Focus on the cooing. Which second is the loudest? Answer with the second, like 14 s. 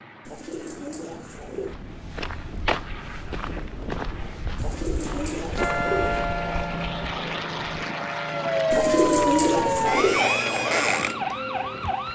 9 s.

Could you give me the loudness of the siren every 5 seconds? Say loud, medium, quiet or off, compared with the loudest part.
off, loud, loud.